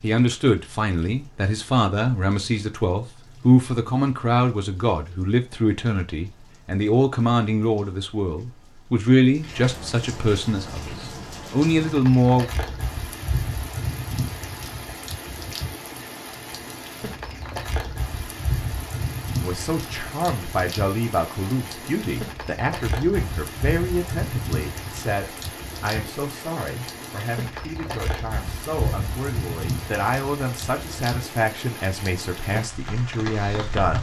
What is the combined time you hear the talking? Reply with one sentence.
You can hear the talking for 27 seconds altogether.